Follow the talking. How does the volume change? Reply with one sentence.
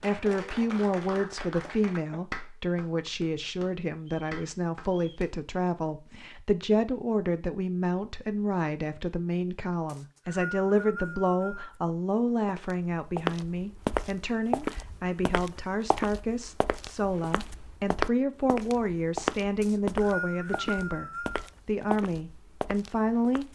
The loudness of the talking stays about the same.